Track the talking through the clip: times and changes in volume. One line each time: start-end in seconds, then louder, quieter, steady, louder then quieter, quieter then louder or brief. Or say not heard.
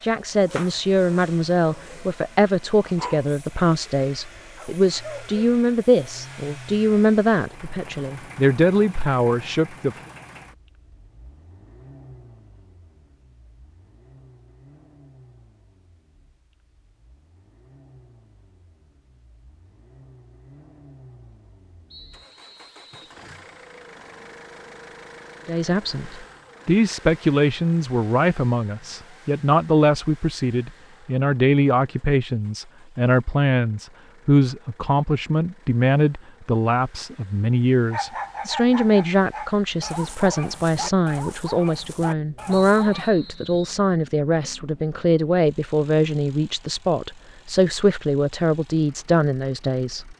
0.0-9.9 steady
25.4-50.1 steady.